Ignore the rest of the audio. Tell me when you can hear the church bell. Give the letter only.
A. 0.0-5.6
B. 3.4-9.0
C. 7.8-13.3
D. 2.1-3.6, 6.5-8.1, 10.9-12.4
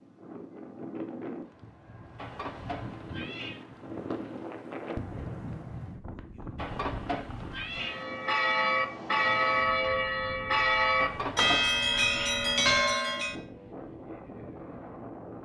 C.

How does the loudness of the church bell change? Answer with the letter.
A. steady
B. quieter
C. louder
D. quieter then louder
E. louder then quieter
A.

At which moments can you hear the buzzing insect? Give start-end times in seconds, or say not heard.
not heard.